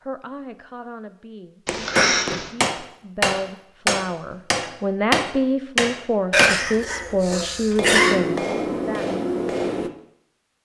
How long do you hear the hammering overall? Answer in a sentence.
The hammering can be heard for 8 seconds in total.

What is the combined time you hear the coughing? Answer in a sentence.
You can hear the coughing for 3 seconds altogether.